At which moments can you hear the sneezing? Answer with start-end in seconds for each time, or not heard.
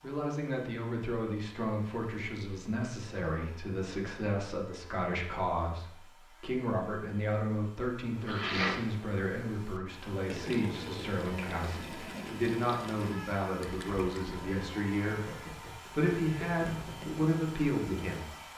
8.2-9.2.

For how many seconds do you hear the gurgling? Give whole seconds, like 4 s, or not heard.
8 s.